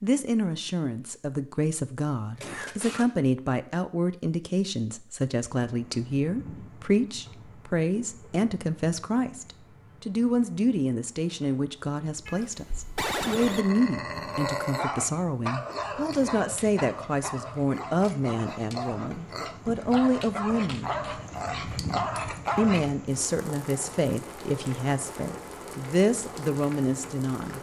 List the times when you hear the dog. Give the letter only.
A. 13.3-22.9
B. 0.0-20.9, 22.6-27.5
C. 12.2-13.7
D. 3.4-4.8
A.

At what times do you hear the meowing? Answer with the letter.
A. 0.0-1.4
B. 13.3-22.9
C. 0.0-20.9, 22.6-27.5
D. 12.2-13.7
D.